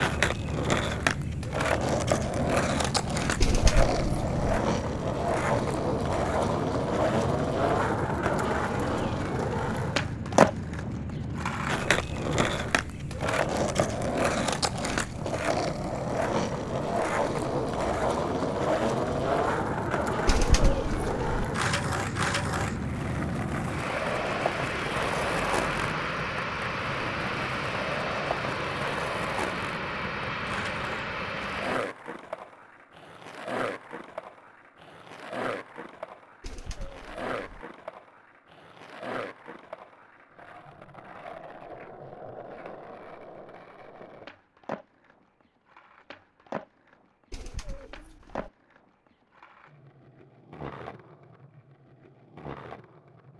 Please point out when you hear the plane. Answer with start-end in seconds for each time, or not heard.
0.0-31.8.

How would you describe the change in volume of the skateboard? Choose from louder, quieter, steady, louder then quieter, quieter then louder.
quieter.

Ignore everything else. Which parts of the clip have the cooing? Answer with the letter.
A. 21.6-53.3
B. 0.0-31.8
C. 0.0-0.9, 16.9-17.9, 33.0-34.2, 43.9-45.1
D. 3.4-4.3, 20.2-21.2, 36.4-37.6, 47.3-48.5
D.